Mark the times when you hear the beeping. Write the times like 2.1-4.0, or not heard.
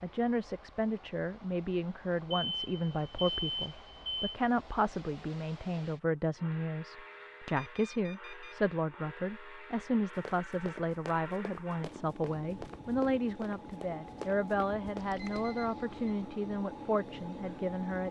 2.3-4.4, 7.5-8.6, 15.0-16.1.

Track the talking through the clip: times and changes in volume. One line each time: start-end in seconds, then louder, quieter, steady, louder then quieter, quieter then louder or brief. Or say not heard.
0.0-18.0 steady.